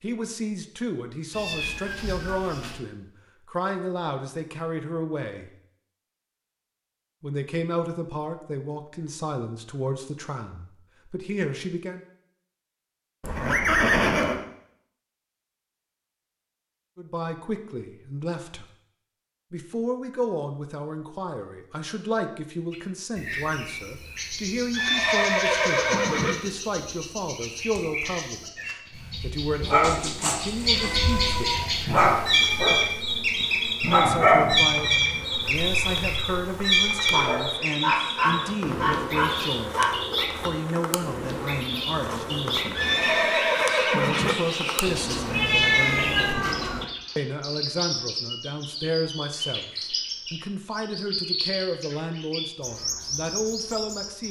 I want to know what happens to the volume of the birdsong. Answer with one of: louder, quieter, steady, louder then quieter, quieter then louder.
louder then quieter.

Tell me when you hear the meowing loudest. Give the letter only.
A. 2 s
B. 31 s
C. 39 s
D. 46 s
D.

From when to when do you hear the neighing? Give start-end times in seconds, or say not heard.
13.2-14.4, 24.7-26.4, 42.8-44.4.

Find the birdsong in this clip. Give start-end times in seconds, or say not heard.
22.7-54.2.